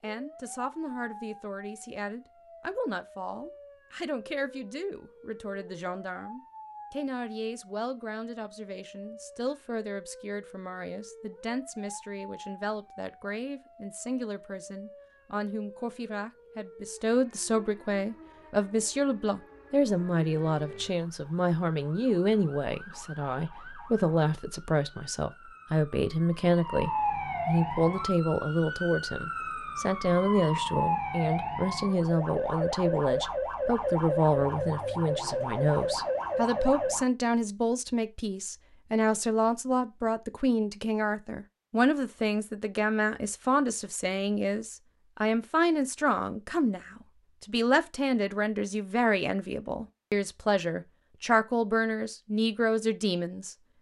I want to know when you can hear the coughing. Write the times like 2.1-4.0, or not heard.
not heard.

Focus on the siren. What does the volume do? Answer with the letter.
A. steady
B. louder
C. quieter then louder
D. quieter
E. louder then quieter
B.